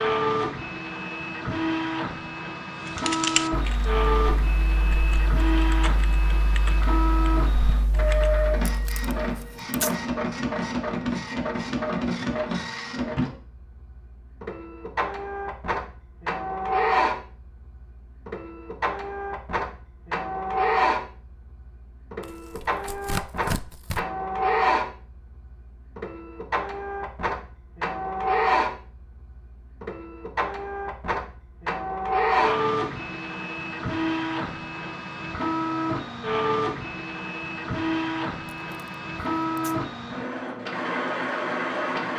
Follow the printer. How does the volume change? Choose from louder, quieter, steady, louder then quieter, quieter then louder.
steady.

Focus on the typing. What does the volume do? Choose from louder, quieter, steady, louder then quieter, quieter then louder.
quieter.